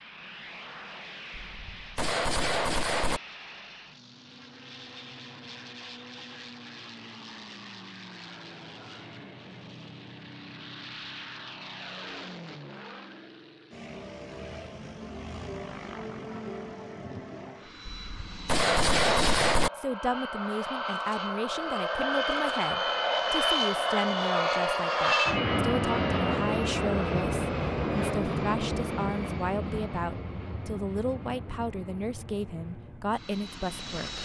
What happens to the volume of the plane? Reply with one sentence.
The loudness of the plane goes up, then down.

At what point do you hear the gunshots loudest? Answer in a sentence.
The loudest moment of the gunshots is at 19 seconds.